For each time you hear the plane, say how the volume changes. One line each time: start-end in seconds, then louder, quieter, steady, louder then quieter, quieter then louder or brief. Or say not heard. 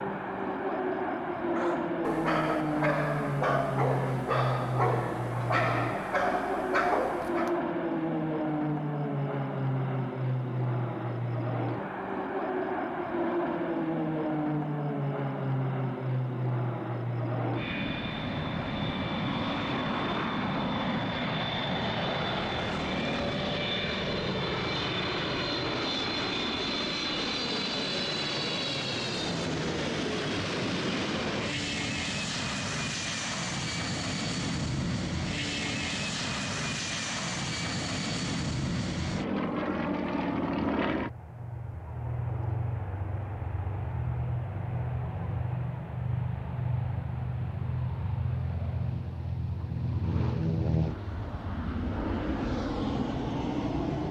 0.0-54.0 steady.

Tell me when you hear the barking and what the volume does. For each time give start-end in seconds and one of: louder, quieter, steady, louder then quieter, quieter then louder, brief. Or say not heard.
1.6-7.6 steady.